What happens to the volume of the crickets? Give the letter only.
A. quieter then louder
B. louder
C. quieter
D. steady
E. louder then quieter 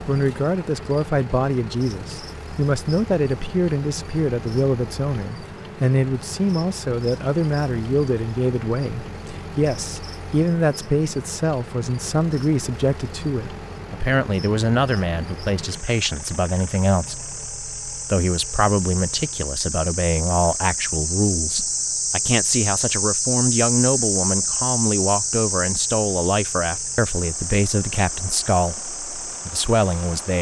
B.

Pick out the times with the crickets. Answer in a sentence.
The crickets can be heard from 0.0 to 30.3 s.